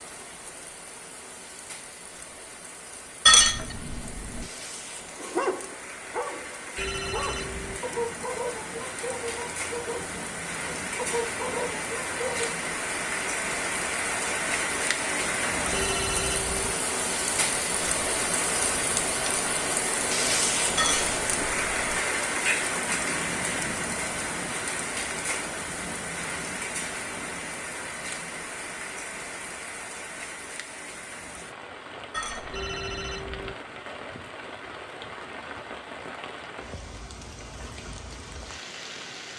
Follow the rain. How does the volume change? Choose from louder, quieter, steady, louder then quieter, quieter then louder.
louder then quieter.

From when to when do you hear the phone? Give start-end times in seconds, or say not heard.
6.8-7.8, 15.7-16.8, 32.5-33.5.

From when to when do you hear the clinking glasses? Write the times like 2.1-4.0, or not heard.
3.2-4.5, 20.8-22.0, 32.1-32.7.